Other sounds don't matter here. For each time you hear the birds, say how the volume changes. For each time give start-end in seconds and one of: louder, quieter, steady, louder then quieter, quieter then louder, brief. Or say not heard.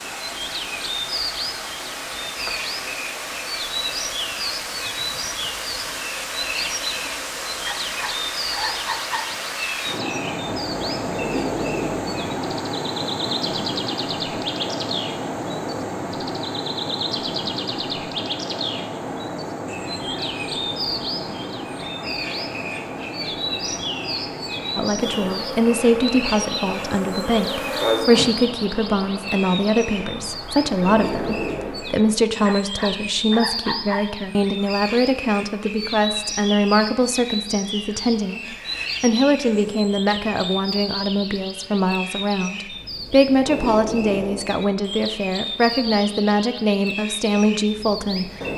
0.0-48.5 steady.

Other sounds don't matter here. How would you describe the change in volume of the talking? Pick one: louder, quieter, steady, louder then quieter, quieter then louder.
steady.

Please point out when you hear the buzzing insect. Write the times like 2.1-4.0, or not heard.
24.9-28.5.